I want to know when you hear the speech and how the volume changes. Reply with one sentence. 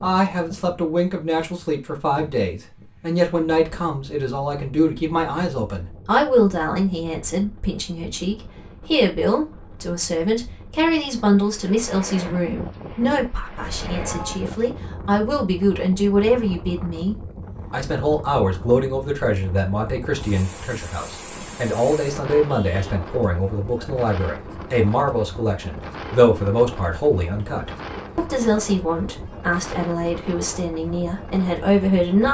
The speech can be heard from 0.0 to 32.2 s, at a steady volume.